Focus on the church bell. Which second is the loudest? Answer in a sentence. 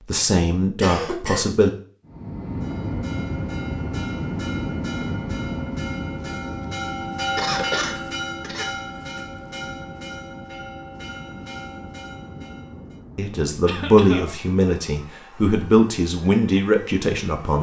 The loudest moment of the church bell is at 7 seconds.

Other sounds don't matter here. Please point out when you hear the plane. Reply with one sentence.
You can hear the plane from 2.0 to 17.5 s.